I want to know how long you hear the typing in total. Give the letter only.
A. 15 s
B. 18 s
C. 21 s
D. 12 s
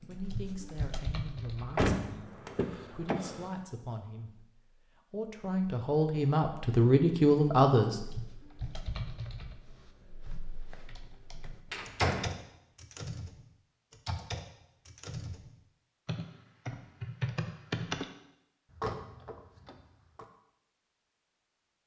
D.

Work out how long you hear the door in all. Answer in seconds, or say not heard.
4 s.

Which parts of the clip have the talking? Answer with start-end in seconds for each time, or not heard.
0.0-8.0.